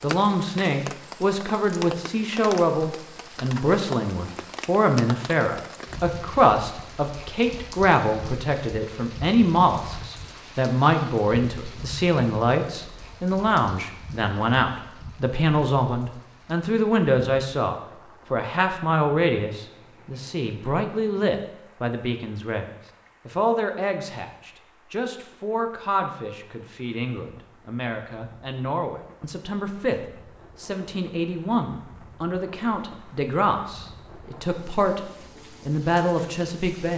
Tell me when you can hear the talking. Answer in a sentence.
The talking can be heard from 0.0 to 36.9 s.